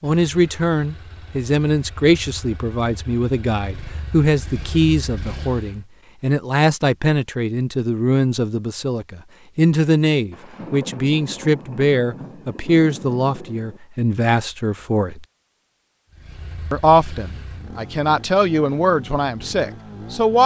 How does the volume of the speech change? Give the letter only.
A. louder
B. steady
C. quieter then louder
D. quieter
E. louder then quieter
B.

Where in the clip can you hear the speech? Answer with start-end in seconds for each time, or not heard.
0.0-15.2, 16.7-20.4.